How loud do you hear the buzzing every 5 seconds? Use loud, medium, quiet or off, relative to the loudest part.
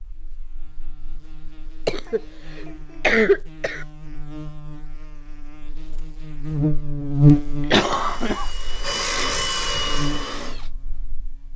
quiet, loud, quiet.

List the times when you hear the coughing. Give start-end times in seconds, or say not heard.
1.9-3.9, 7.7-8.4.